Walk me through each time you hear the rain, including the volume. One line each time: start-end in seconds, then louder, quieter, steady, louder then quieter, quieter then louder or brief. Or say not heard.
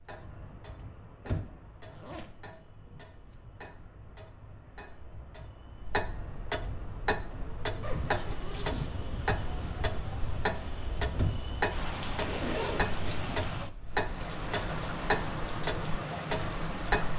0.0-17.1 louder.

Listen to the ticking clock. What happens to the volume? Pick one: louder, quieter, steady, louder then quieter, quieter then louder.
louder.